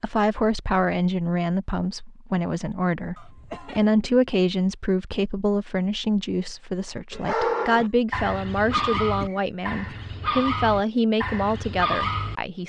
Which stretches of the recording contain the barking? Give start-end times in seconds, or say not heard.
7.1-12.3.